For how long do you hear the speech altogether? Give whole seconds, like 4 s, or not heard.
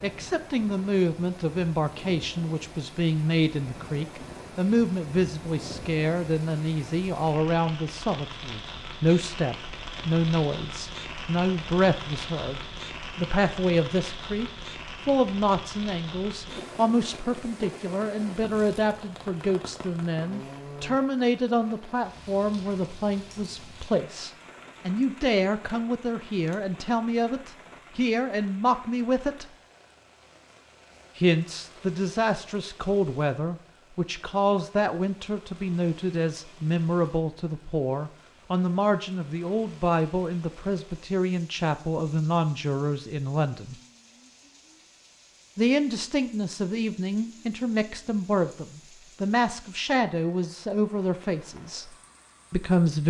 49 s.